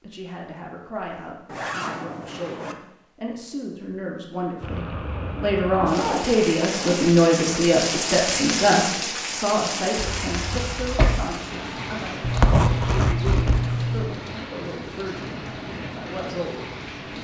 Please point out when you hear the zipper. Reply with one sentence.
You can hear the zipper from 1.4 to 2.8 s, from 5.8 to 7.1 s and from 12.2 to 14.2 s.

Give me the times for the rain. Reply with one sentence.
You can hear the rain from 4.6 to 17.1 s.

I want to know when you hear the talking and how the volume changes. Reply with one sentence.
You can hear the talking from 0.0 to 17.1 s, getting louder then quieter.